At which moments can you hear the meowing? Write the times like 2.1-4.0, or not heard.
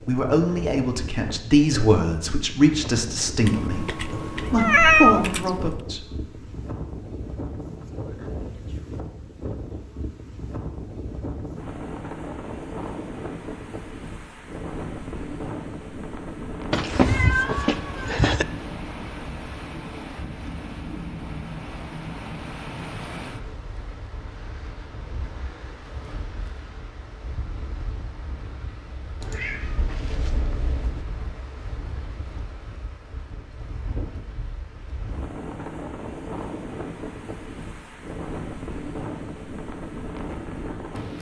3.5-5.7, 16.7-18.4, 29.2-31.1.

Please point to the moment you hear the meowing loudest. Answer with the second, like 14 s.
5 s.